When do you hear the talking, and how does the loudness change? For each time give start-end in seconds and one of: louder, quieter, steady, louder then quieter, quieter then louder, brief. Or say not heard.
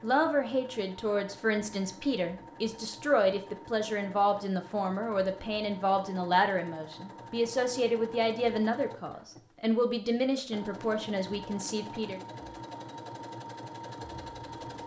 0.0-12.2 steady.